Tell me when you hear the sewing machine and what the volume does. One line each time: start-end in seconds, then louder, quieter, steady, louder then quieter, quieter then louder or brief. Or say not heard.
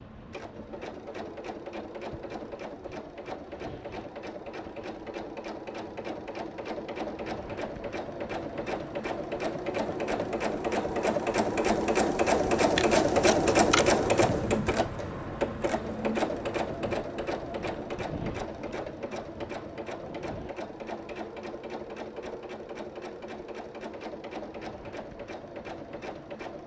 0.0-26.6 louder then quieter.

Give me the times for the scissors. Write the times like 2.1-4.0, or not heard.
12.8-13.9.